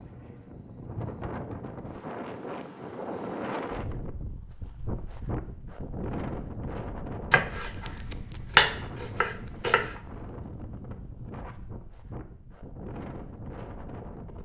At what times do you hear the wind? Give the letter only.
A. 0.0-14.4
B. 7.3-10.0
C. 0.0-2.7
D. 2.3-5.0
A.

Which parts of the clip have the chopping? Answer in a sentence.
The chopping can be heard from 7.3 to 10.0 s.